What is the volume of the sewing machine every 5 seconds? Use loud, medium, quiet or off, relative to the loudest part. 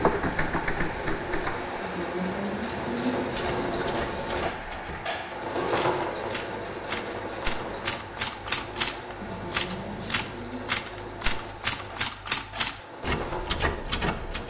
loud, loud, medium.